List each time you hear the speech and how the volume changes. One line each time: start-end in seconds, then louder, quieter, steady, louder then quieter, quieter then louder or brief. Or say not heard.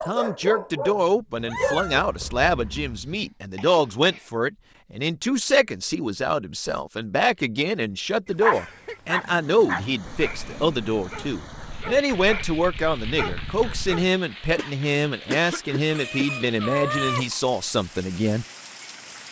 0.1-18.4 steady.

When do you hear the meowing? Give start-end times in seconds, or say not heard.
1.4-3.0, 15.9-17.3.